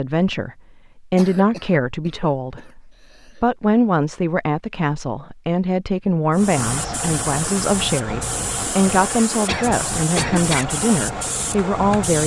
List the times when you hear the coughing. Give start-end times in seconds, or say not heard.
1.1-3.5, 9.4-10.7.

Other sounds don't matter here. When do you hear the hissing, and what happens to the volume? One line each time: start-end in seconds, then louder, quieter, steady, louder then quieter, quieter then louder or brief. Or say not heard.
6.3-12.2 steady.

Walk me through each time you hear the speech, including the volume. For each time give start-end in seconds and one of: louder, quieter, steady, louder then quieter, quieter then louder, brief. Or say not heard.
0.0-0.5 brief
1.1-12.2 steady.